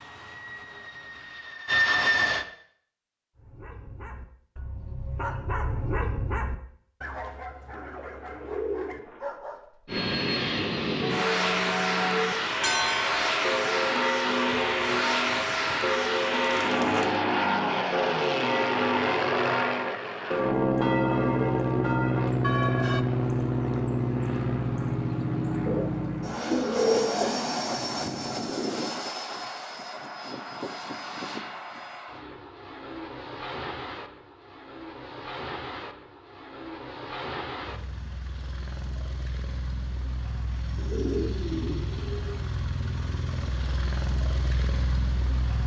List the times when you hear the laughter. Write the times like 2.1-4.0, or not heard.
not heard.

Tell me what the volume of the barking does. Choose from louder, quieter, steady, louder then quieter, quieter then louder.
louder then quieter.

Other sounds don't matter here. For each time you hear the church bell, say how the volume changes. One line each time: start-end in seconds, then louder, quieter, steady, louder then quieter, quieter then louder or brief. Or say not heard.
11.0-23.1 steady.